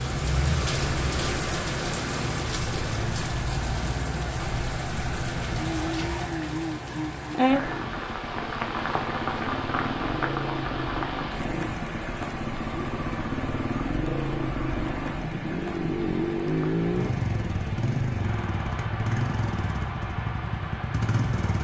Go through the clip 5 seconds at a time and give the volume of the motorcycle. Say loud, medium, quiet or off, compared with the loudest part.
medium, medium, loud, loud, loud.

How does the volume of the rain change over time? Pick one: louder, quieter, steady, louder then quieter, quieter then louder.
quieter.